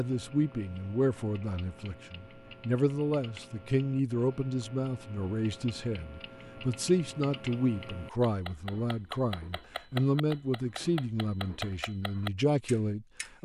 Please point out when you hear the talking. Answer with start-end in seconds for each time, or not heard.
0.0-13.4.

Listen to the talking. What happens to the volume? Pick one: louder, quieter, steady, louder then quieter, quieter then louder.
steady.